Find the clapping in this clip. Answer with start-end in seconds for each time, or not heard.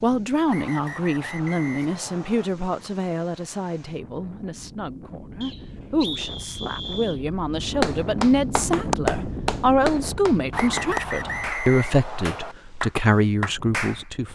7.8-14.1.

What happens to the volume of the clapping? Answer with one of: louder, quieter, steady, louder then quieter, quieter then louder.
quieter then louder.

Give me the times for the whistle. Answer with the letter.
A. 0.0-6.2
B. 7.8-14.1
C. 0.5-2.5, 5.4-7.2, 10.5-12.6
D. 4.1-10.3
C.